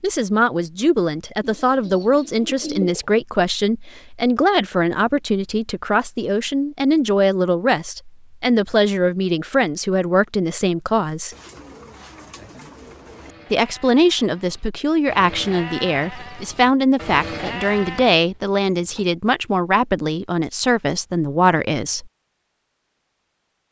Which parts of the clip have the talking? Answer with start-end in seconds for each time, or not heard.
0.0-11.3, 13.5-22.1.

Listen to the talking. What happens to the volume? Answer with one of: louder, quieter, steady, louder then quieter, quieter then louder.
steady.